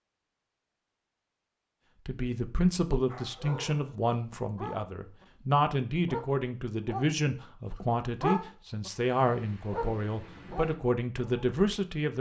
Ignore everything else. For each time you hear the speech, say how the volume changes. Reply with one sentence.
The speech can be heard from 2.0 to 12.1 s, at a steady volume.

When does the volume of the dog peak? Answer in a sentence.
The loudest moment of the dog is at 8 seconds.